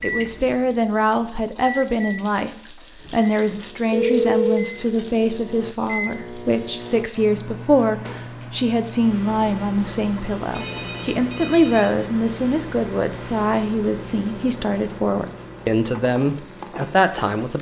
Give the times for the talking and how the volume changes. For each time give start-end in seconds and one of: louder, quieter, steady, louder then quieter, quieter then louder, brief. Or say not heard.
0.0-17.5 steady.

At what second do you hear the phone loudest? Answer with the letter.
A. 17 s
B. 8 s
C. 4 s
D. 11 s
C.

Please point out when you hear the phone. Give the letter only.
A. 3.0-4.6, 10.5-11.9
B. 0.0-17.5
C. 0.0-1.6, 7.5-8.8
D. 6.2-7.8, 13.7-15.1
A.